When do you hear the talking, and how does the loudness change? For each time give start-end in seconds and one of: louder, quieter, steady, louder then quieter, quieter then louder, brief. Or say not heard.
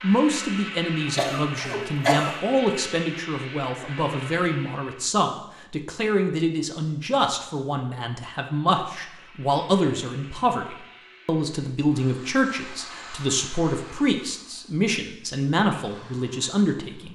0.0-17.1 steady.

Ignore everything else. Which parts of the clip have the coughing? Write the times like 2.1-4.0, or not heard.
1.1-2.4.